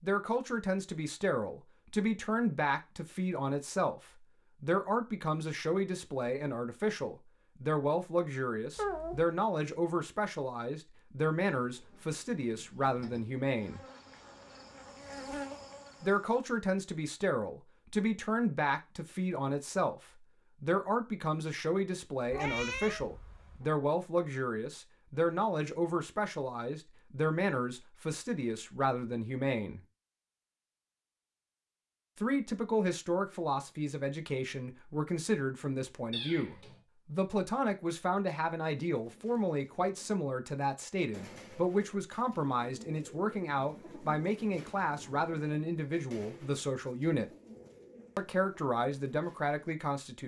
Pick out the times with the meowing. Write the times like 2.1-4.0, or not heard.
8.8-9.2, 22.3-23.7, 36.1-36.8.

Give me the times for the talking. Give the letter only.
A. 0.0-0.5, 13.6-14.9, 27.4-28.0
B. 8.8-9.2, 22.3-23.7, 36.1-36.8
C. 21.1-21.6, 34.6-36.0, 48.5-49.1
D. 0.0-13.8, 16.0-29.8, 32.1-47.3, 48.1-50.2
D.